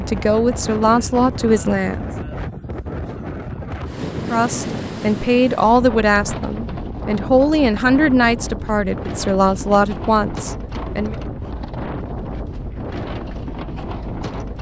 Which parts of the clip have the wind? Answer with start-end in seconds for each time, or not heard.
0.0-14.5.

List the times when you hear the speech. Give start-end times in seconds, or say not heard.
0.0-2.1, 4.3-11.2.